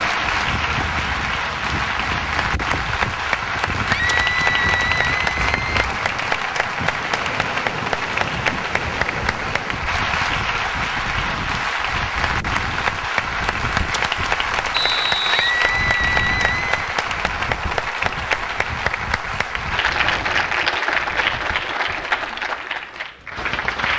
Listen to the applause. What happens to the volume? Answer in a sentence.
The volume of the applause stays about the same.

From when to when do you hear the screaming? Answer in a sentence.
You can hear the screaming from 3.9 to 5.8 s and from 15.3 to 16.8 s.